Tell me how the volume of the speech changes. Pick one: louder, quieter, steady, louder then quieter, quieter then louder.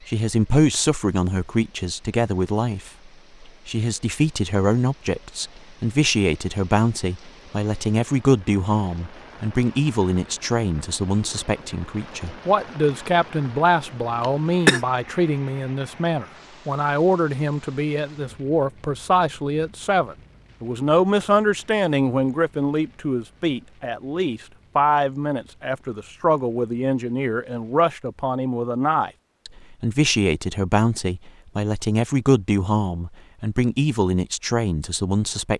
steady.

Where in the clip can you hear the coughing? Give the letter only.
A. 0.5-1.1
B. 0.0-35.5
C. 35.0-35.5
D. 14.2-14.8
D.